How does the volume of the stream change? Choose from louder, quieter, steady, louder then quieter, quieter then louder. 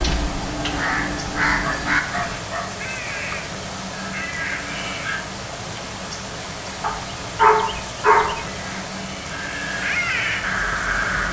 steady.